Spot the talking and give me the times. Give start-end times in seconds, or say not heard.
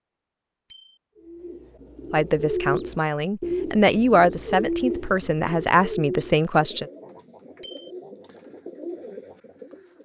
2.1-6.8.